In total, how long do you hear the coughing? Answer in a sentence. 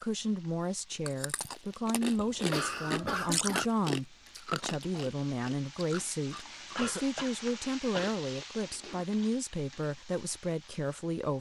You can hear the coughing for 3 seconds altogether.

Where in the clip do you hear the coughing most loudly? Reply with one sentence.
The volume of the coughing peaks at 3 seconds.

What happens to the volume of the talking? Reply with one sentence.
The volume of the talking stays about the same.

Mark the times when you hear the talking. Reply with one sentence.
The talking can be heard from 0.0 to 11.3 s.